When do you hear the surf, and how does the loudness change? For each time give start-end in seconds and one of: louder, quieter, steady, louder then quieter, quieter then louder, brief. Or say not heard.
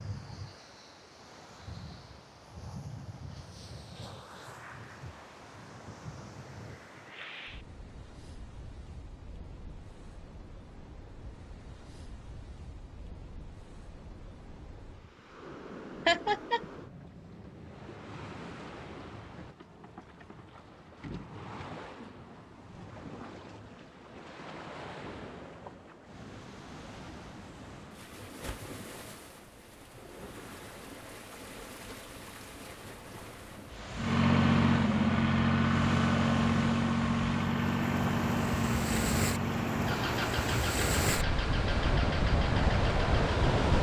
0.0-43.7 louder.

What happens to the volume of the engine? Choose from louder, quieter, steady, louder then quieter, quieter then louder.
quieter.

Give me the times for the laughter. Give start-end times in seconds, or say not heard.
16.1-16.6.